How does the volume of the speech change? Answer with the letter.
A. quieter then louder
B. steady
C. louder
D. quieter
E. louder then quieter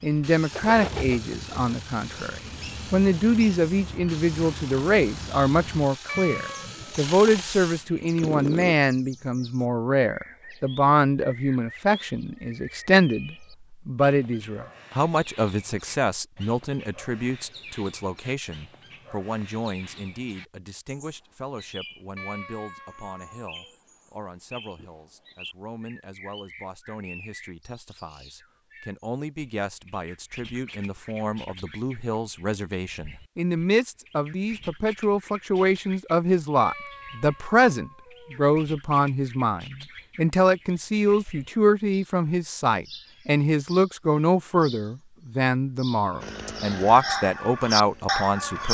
A.